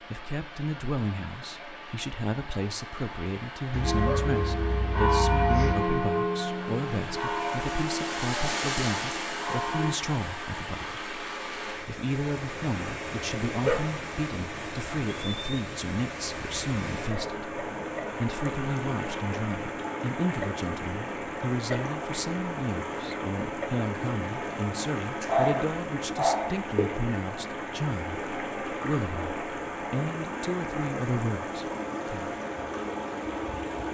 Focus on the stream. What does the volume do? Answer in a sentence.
The loudness of the stream goes up.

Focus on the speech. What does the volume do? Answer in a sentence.
The loudness of the speech stays about the same.